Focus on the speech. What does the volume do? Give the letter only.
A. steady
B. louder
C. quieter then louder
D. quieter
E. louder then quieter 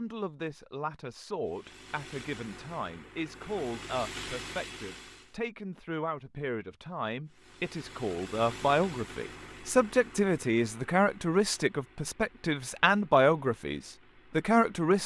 B.